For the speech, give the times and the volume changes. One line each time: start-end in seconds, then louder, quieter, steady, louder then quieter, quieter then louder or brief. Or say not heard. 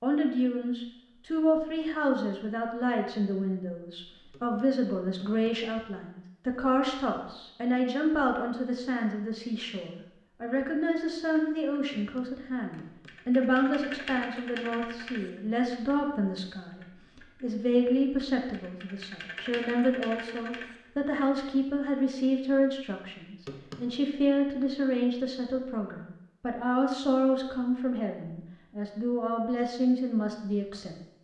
0.0-30.9 steady.